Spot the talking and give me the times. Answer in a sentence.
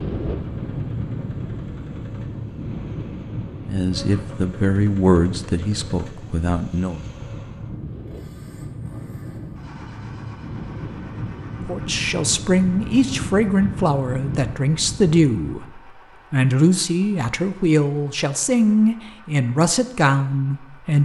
The talking can be heard from 3.6 to 7.0 s and from 11.7 to 21.0 s.